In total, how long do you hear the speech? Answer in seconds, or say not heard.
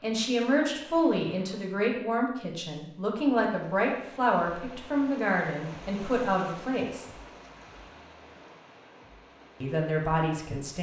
8 s.